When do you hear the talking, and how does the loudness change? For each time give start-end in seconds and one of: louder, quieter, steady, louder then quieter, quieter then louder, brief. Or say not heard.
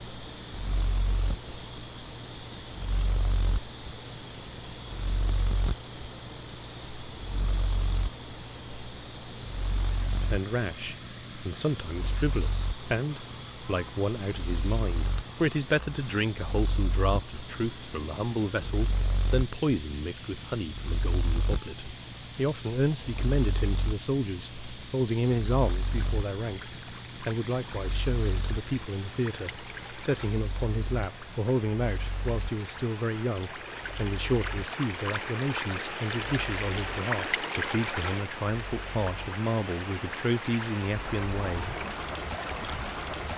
10.2-41.6 steady.